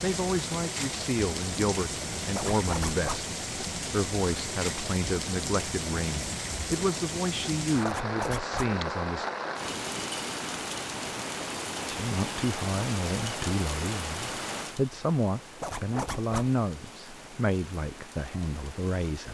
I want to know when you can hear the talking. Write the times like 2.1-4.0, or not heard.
0.0-9.2, 11.9-19.2.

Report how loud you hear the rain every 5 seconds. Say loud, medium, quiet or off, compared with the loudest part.
loud, loud, loud, quiet.